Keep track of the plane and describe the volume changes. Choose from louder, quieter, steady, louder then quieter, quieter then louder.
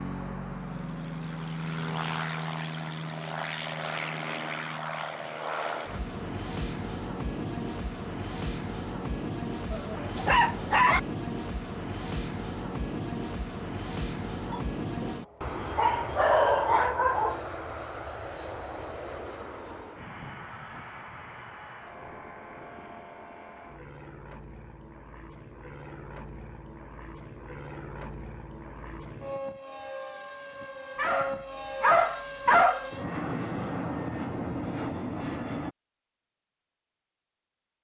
quieter then louder.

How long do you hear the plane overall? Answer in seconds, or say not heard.
36 s.